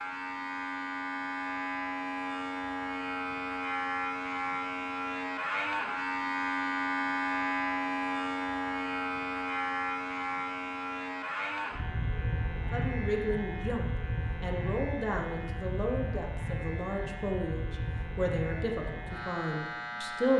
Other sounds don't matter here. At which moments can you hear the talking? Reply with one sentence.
You can hear the talking from 12.7 to 20.3 s.